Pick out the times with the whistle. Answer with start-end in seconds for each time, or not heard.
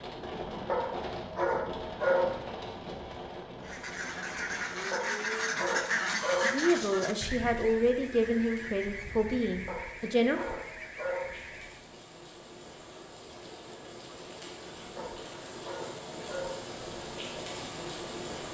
not heard.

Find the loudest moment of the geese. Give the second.
6 s.